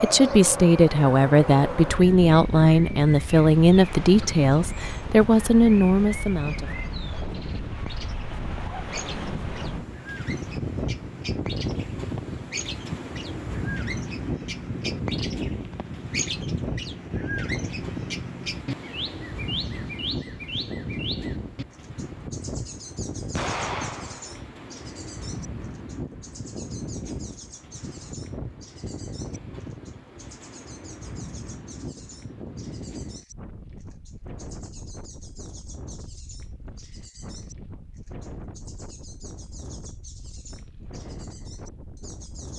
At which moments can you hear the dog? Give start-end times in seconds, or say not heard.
not heard.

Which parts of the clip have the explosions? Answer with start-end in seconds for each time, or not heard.
23.4-24.4.